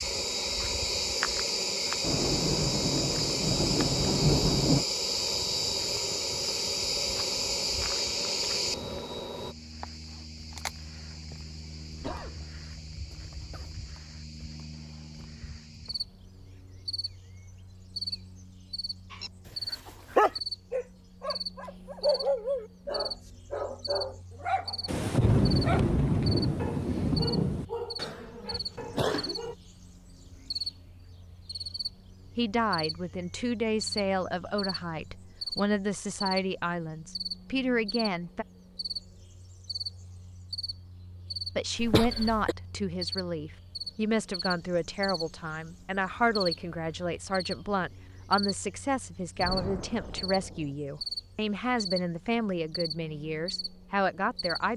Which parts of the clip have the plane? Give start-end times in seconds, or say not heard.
0.0-9.6.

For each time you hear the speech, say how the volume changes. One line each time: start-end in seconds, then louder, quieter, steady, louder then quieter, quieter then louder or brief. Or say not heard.
32.4-38.5 steady
41.5-54.7 steady.